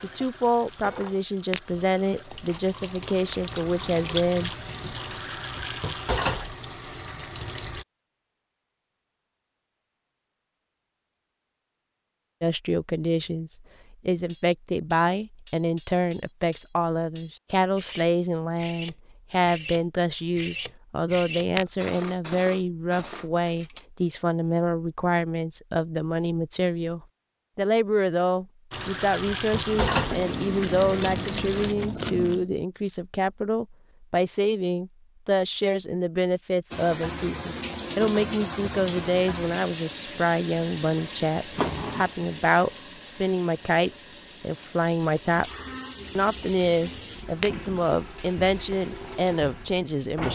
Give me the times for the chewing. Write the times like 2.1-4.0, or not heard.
2.3-4.3, 29.6-32.5.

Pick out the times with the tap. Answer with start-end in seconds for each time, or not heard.
0.0-7.8, 28.7-31.8, 36.7-50.3.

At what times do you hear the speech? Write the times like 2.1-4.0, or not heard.
0.0-4.5, 12.4-50.3.